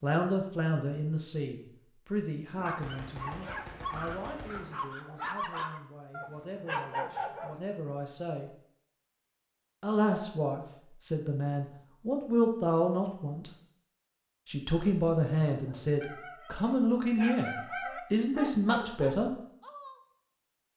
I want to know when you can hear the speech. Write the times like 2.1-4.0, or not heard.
0.0-8.6, 9.8-13.5, 14.4-17.5, 18.1-19.4.